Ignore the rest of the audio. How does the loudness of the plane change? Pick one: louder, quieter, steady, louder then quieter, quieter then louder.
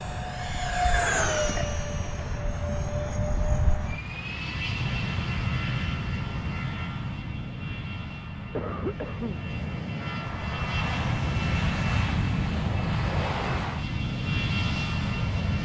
quieter then louder.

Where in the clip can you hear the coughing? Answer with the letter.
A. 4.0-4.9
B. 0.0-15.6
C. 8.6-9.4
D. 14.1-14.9
C.